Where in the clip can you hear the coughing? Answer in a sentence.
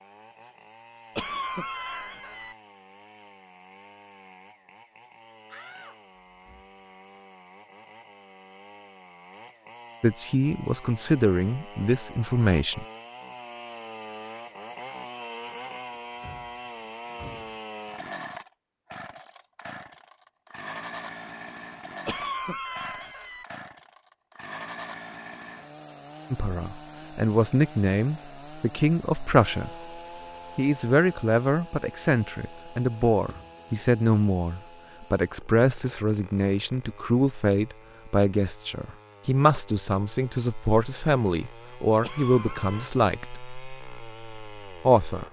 The coughing can be heard from 1.1 to 2.5 s, from 22.1 to 23.4 s and from 42.0 to 42.9 s.